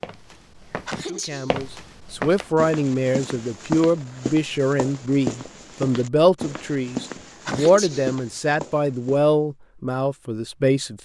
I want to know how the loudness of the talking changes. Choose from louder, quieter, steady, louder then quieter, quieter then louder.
steady.